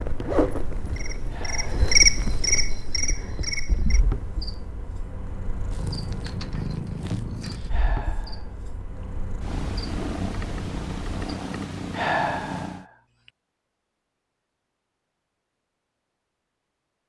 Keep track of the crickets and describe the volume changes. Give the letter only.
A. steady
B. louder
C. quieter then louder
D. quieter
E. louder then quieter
D.